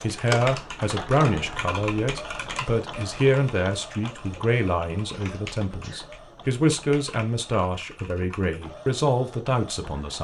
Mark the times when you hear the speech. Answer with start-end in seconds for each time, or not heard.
0.0-10.1.